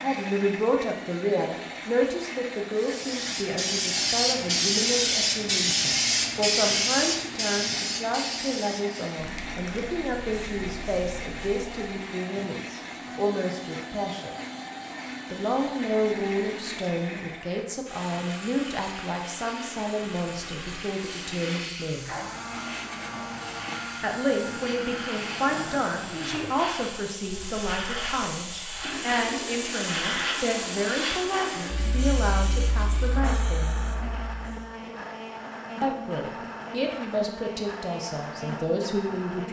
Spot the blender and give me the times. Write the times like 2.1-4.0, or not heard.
0.0-39.4.